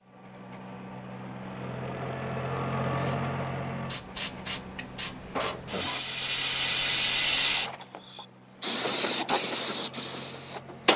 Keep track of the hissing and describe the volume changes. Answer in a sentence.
The loudness of the hissing goes up.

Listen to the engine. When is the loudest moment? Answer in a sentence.
The loudest moment of the engine is at 3 seconds.